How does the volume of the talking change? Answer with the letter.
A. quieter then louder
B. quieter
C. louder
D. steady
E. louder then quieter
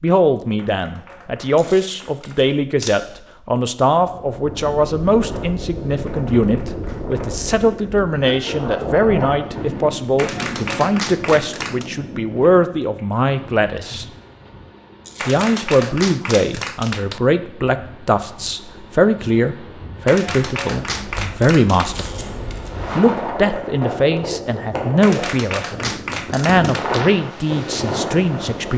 D.